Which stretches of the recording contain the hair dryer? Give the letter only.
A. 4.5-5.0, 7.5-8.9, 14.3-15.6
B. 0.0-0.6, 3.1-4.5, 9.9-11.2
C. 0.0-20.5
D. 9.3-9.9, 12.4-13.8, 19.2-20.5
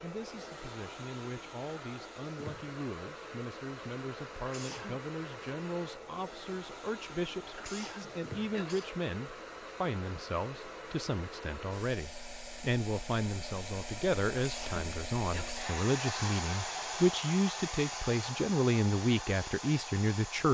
C.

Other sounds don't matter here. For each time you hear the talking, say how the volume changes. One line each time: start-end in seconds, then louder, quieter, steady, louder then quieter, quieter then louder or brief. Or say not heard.
0.0-20.5 louder.